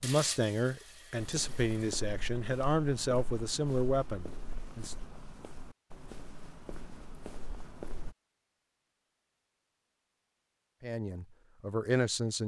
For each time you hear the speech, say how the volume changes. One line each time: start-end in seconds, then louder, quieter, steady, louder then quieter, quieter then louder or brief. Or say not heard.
0.0-5.0 steady
10.8-12.4 brief.